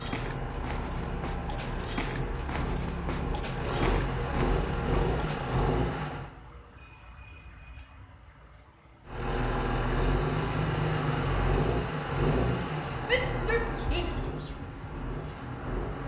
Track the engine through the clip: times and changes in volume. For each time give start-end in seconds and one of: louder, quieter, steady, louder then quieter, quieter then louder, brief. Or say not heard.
0.0-6.3 louder
9.1-16.0 quieter.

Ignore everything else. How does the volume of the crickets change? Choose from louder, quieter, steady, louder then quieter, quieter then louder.
quieter.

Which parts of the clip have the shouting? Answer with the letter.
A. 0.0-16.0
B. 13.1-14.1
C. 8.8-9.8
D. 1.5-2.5
B.